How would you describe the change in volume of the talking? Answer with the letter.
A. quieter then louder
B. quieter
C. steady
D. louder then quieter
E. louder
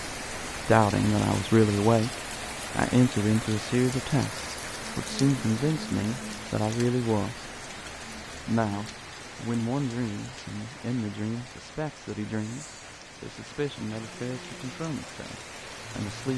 B.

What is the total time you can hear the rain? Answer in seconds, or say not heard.
16 s.